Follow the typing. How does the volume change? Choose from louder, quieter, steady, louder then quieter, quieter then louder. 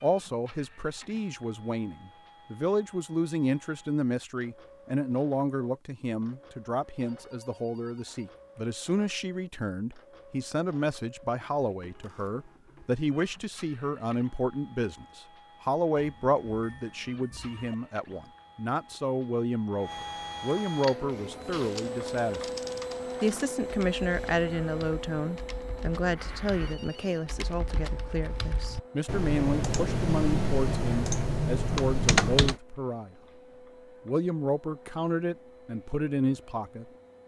quieter then louder.